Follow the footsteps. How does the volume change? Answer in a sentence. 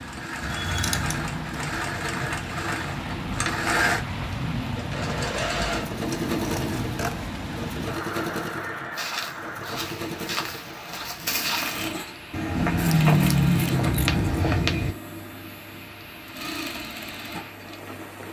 The loudness of the footsteps goes up.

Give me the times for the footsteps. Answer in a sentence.
The footsteps can be heard from 8.9 to 14.9 s.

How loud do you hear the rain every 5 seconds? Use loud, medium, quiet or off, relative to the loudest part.
loud, loud, medium, medium.